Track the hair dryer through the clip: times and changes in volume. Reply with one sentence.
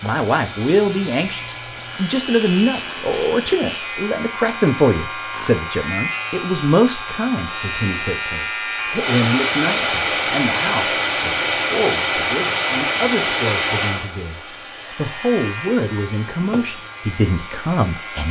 The hair dryer can be heard from 0.0 to 18.2 s, getting louder then quieter.